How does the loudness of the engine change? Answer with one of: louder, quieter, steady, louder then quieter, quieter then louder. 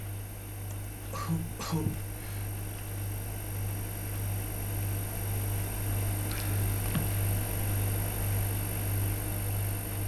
louder.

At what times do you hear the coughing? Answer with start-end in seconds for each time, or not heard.
0.7-2.5, 6.3-7.2.